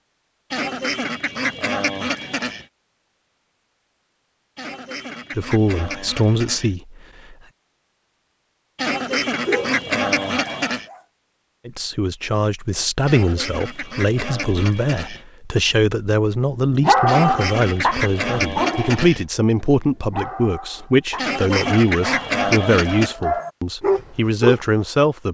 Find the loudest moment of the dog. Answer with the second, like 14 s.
17 s.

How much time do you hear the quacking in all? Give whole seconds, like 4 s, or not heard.
13 s.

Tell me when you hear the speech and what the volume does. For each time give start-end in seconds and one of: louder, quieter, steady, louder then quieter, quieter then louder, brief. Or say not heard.
5.3-7.3 brief
11.7-25.2 steady.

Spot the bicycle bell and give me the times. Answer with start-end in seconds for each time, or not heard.
not heard.